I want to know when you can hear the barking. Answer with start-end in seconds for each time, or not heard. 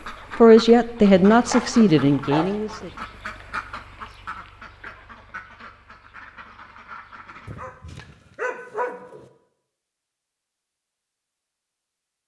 1.3-2.9, 7.5-9.2.